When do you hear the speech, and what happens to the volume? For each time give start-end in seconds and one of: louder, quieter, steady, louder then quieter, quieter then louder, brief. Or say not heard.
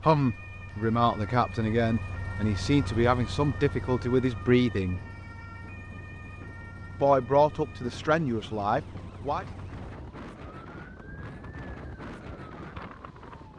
0.0-5.0 steady
7.0-9.4 brief.